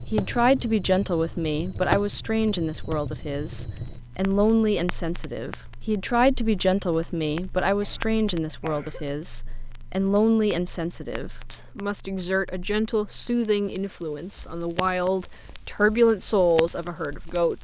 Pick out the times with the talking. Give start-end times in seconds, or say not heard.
0.1-17.5.